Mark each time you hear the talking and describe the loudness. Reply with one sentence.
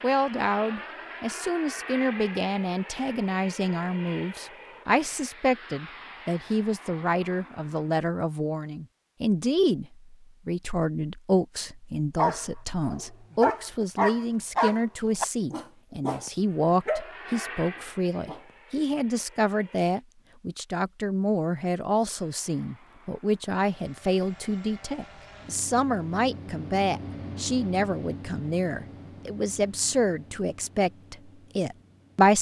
You can hear the talking from 0.0 to 32.3 s, at a steady volume.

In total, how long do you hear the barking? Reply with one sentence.
You can hear the barking for 7 seconds altogether.